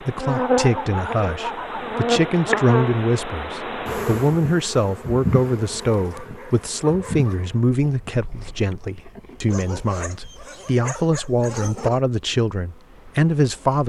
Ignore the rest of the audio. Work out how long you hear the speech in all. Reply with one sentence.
You can hear the speech for 14 seconds altogether.